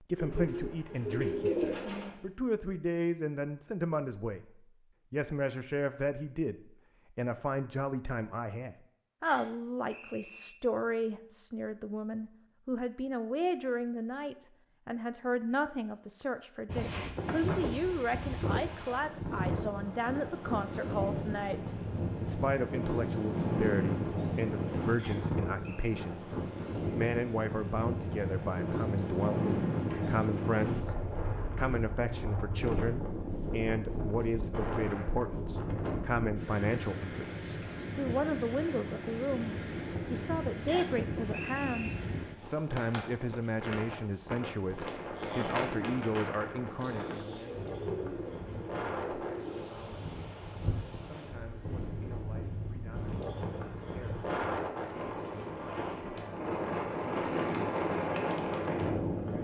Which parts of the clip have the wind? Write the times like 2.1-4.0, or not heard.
16.6-59.3.